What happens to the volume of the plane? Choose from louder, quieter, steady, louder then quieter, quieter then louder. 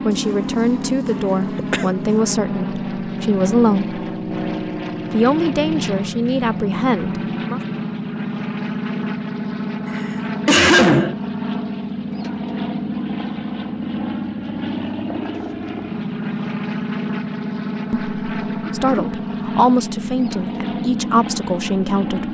steady.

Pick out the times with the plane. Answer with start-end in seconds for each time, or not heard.
0.0-22.3.